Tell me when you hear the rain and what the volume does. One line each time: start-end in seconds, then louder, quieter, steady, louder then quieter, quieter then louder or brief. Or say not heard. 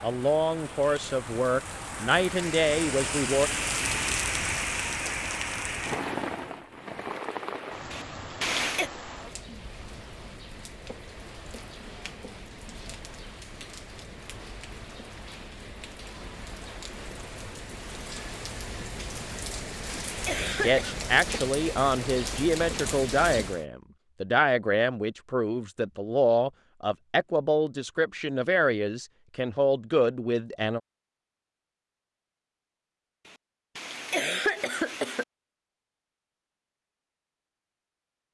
0.0-23.6 quieter then louder.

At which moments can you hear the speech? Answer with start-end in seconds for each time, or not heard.
0.0-3.5, 20.5-30.8.